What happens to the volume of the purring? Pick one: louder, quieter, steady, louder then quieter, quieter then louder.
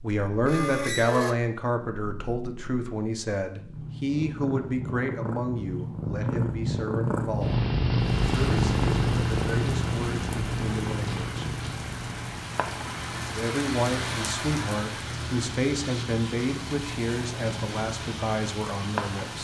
louder then quieter.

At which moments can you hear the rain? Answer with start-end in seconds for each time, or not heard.
8.0-19.3.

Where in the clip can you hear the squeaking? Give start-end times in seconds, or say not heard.
0.5-1.4.